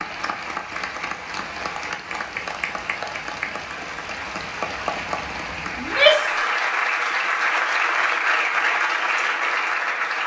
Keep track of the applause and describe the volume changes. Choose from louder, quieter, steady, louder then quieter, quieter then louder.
louder.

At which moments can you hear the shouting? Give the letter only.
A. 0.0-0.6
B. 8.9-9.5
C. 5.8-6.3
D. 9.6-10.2
C.